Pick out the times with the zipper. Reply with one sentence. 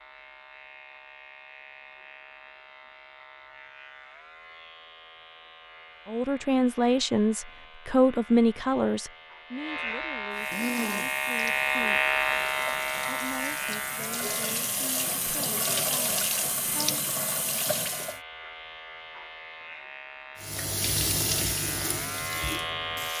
The zipper can't be heard in this clip.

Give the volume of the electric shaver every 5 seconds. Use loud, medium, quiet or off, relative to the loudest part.
quiet, quiet, loud, quiet, medium.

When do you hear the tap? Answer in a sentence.
You can hear the tap from 10.3 to 18.2 s and from 20.4 to 23.1 s.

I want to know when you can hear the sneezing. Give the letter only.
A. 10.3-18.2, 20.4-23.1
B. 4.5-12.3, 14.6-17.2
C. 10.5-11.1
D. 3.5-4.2
C.